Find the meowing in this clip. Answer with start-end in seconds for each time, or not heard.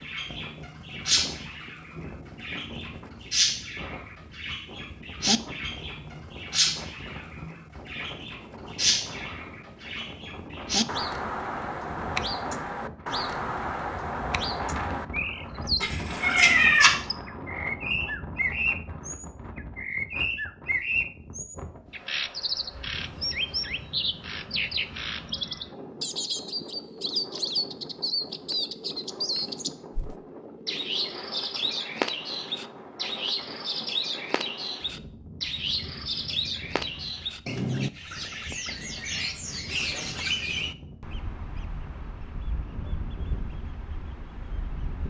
15.8-16.9.